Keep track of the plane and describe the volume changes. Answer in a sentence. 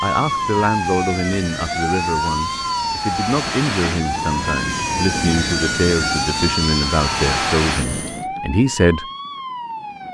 The volume of the plane goes up.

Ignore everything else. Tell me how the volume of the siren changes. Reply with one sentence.
The loudness of the siren goes down.